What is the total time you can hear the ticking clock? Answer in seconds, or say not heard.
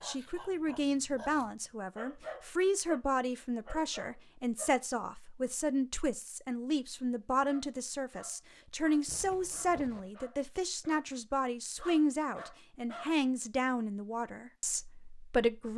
not heard.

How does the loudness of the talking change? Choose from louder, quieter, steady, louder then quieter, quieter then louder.
steady.